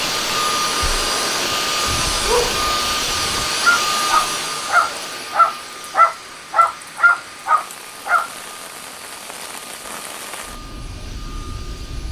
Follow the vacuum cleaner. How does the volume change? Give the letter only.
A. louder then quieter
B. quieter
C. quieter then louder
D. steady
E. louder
B.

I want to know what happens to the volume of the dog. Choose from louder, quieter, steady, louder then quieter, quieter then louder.
louder.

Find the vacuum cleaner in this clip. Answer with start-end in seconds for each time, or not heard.
0.0-12.0.